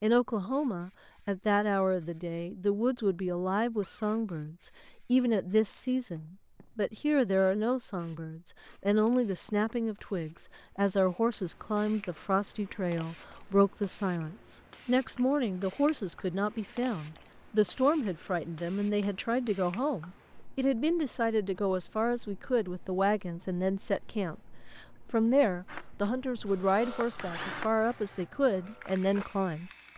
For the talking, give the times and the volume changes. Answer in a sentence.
The talking can be heard from 0.0 to 29.9 s, at a steady volume.